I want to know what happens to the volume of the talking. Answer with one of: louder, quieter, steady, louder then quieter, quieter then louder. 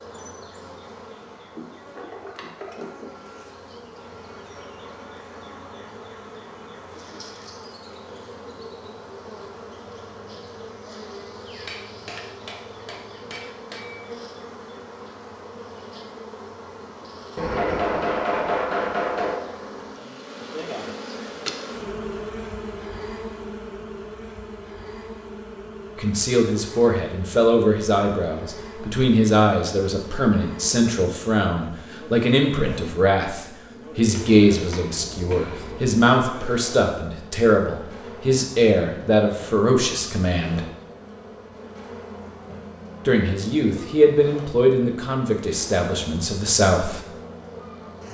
steady.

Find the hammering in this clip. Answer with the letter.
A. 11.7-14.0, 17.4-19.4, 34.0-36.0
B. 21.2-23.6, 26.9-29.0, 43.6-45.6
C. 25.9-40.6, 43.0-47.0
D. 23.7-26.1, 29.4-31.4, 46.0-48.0
A.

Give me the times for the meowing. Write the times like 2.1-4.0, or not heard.
not heard.